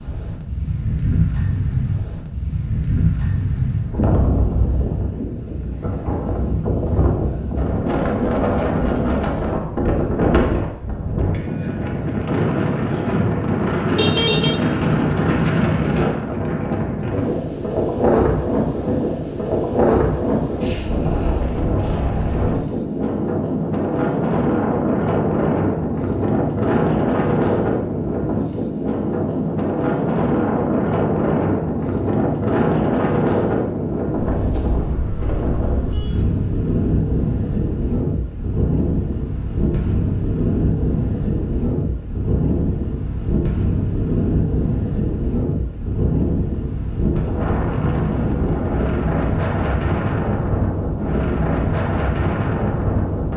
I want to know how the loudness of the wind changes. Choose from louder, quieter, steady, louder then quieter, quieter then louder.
steady.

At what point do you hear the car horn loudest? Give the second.
14 s.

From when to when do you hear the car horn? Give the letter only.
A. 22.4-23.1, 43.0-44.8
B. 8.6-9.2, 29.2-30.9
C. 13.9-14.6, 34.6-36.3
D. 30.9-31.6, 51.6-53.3
C.